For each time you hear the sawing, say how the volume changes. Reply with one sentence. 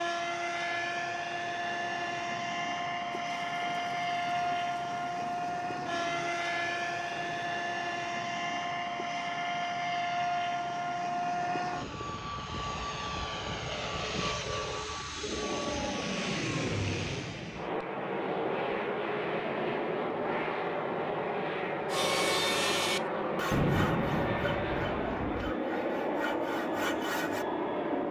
The sawing can be heard from 21.9 to 27.4 s, getting quieter then louder.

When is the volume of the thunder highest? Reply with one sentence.
The loudest moment of the thunder is at 24 seconds.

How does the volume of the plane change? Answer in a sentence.
The loudness of the plane stays about the same.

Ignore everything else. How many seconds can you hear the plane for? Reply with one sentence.
You can hear the plane for 28 seconds altogether.